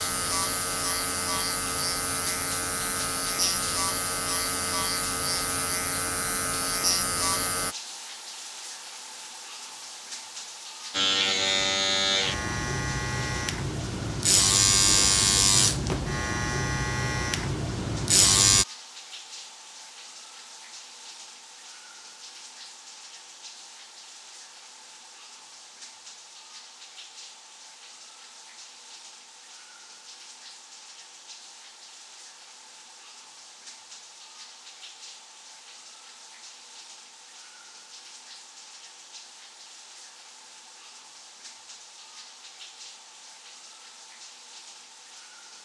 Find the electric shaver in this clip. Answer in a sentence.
You can hear the electric shaver from 0.0 to 7.8 s and from 10.9 to 18.6 s.